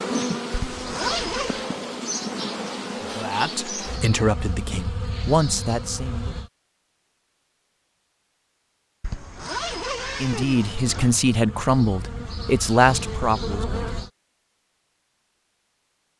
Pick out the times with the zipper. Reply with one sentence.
You can hear the zipper from 0.5 to 1.6 s and from 9.0 to 11.2 s.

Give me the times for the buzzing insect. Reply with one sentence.
You can hear the buzzing insect from 0.0 to 6.5 s and from 10.6 to 14.1 s.